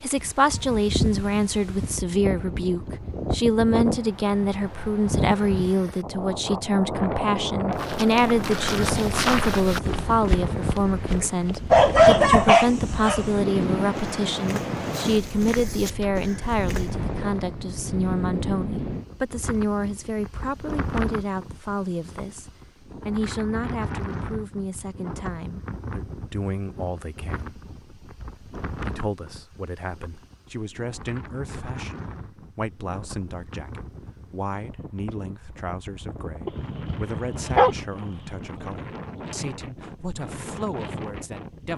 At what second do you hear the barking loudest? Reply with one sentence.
The loudest moment of the barking is at 12 seconds.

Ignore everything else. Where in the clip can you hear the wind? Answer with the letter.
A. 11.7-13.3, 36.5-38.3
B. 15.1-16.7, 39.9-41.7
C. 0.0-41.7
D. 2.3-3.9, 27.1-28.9
C.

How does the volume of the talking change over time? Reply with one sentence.
The volume of the talking goes down.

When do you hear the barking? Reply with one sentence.
The barking can be heard from 11.7 to 13.3 s and from 36.5 to 38.3 s.